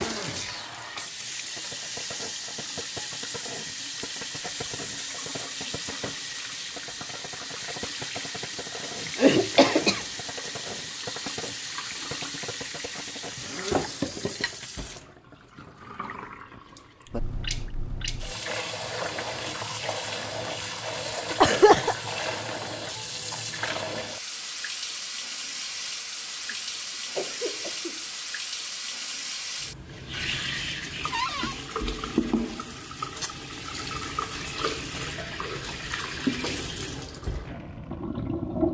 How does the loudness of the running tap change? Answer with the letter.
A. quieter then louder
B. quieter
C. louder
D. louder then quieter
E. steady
E.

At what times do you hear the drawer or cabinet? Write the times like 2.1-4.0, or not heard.
31.1-31.6.